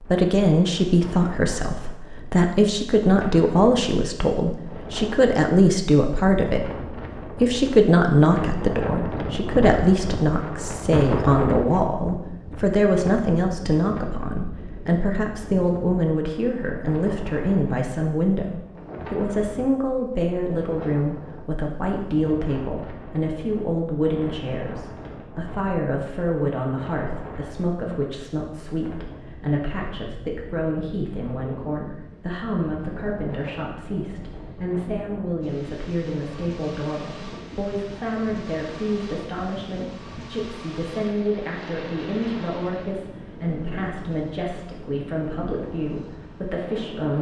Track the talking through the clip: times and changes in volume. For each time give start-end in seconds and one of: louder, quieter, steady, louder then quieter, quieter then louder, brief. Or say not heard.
0.0-47.1 quieter.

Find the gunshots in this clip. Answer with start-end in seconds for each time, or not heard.
not heard.